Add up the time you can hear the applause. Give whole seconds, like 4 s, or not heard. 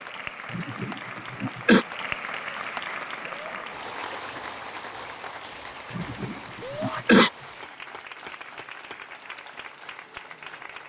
11 s.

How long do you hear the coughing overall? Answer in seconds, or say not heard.
3 s.